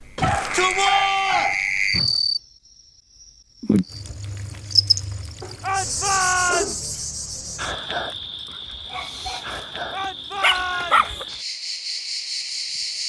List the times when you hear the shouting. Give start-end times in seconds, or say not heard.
0.1-1.6, 5.6-6.8, 9.9-11.2.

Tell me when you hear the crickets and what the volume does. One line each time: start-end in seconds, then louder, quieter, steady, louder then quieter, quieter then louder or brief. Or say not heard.
0.0-13.0 quieter.